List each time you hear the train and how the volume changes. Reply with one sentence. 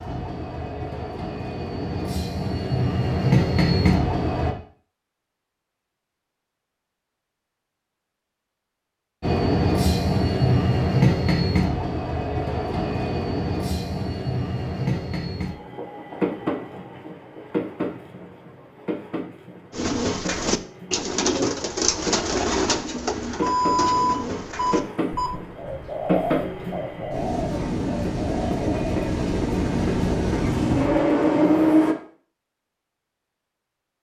The train can be heard from 0.0 to 4.5 s, getting louder; and from 9.2 to 31.9 s, getting quieter then louder.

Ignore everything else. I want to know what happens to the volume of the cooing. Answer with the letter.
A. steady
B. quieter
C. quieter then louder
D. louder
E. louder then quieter
B.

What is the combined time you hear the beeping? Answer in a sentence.
The beeping can be heard for 2 seconds in total.